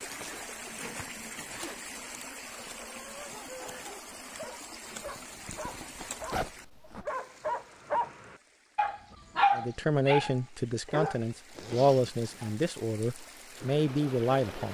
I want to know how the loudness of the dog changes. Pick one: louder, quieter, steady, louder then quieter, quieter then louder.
louder.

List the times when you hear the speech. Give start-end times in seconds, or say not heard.
9.6-14.7.